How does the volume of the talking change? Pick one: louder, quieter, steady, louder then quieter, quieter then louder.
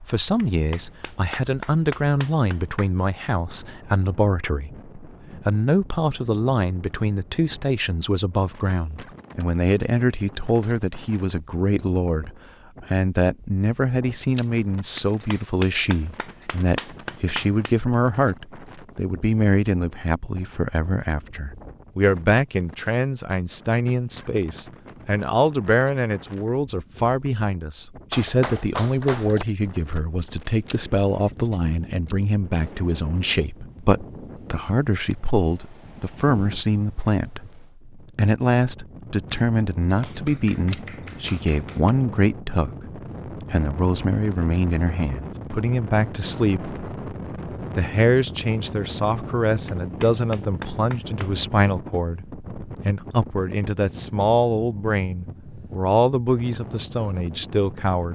steady.